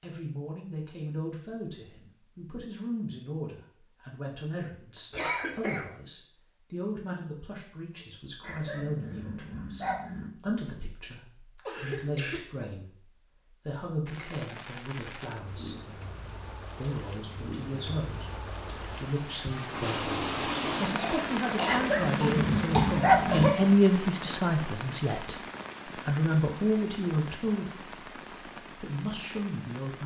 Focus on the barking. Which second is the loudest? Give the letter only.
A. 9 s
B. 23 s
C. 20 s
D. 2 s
B.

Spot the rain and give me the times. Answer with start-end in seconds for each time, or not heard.
14.1-30.0.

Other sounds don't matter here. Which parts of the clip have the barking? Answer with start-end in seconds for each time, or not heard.
8.4-10.3, 21.6-23.5.